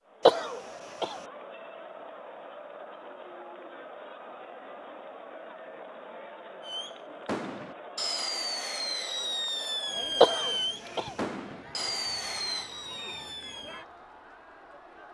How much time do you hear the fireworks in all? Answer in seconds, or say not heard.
7 s.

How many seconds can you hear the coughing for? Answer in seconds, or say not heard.
2 s.